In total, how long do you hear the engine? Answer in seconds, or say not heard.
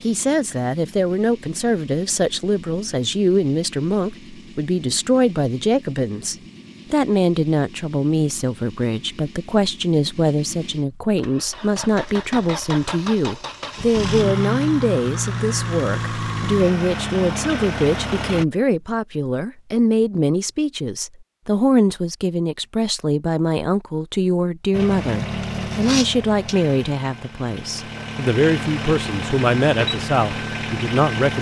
25 s.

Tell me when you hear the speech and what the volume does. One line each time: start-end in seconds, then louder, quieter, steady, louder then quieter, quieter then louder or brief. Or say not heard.
0.0-31.3 steady.